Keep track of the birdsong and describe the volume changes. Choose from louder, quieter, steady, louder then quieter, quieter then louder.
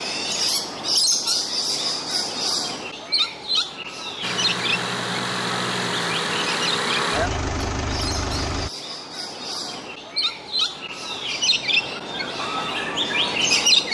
quieter then louder.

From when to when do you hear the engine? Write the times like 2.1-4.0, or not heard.
4.2-8.7.